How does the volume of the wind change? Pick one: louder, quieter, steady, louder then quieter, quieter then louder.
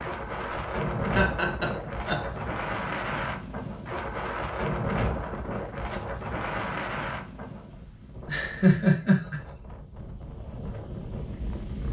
quieter.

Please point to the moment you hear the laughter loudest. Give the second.
9 s.